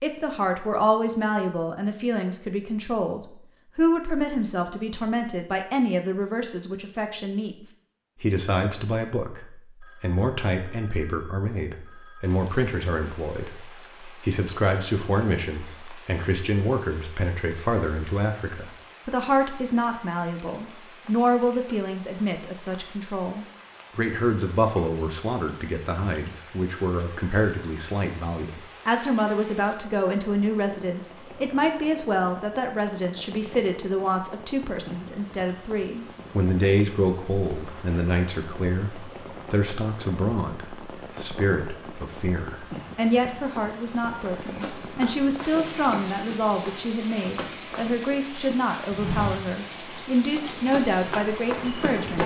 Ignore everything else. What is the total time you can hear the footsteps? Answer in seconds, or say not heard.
8 s.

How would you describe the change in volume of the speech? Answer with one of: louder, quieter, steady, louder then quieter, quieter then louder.
steady.